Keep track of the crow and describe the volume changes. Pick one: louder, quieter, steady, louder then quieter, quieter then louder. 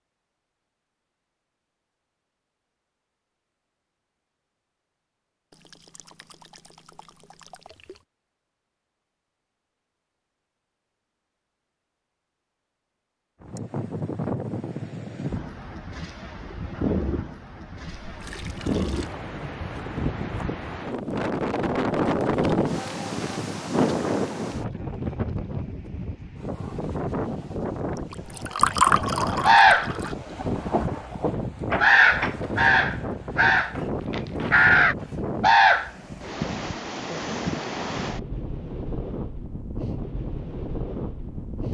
louder.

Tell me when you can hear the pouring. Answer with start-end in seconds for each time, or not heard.
5.5-8.1, 18.1-19.1, 28.1-30.1.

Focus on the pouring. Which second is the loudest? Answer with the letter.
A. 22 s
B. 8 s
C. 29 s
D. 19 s
C.